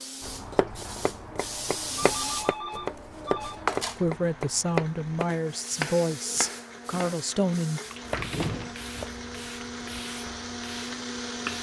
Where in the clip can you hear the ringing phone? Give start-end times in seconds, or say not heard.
2.0-3.6, 8.1-8.8.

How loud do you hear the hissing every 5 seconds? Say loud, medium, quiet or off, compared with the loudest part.
loud, medium, medium.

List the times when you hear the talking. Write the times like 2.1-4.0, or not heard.
4.0-7.8.